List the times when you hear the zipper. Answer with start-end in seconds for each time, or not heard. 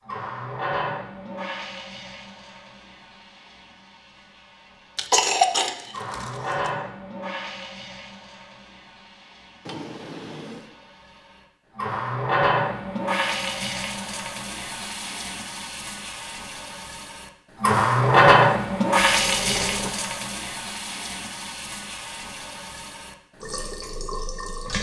not heard.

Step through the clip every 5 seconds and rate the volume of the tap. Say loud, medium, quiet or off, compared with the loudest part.
quiet, quiet, medium, loud, quiet.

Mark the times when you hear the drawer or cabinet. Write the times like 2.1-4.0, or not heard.
9.7-10.8, 19.2-20.1.